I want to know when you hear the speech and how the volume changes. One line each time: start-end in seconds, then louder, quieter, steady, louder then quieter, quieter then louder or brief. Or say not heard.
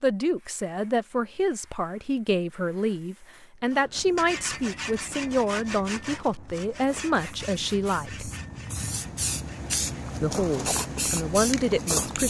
0.0-8.3 steady
10.2-12.2 brief.